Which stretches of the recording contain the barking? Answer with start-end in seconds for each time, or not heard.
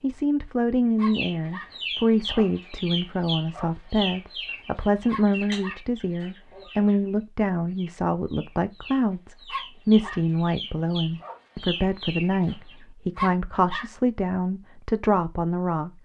0.9-1.7, 5.0-5.8, 9.4-10.2, 13.2-13.8.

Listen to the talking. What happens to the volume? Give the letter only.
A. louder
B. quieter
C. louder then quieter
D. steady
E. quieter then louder
D.